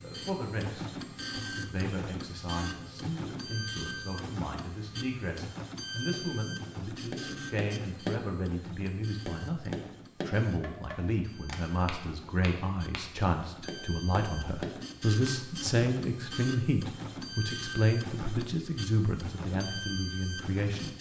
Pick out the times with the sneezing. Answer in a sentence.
You can't hear the sneezing here.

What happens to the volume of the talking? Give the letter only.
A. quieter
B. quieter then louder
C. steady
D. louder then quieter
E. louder
E.